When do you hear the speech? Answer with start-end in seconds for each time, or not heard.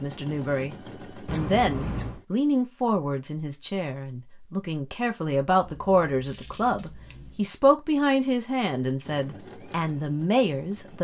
0.0-10.9.